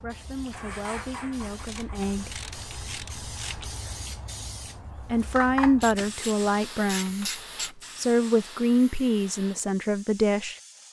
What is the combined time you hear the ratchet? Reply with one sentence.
You can hear the ratchet for 4 seconds altogether.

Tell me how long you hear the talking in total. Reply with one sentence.
You can hear the talking for 8 seconds altogether.